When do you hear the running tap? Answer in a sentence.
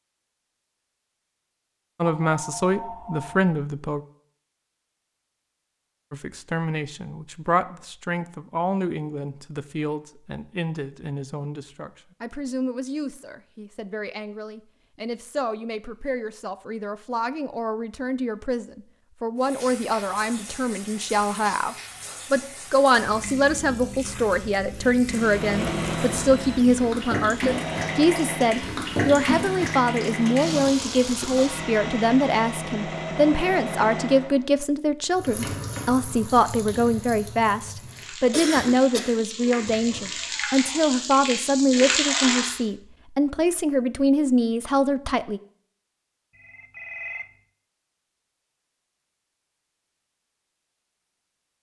You can hear the running tap from 19.4 to 31.6 s and from 35.1 to 42.6 s.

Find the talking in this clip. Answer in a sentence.
The talking can be heard from 2.0 to 4.0 s and from 6.1 to 45.4 s.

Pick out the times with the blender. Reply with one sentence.
You can hear the blender from 25.1 to 34.5 s.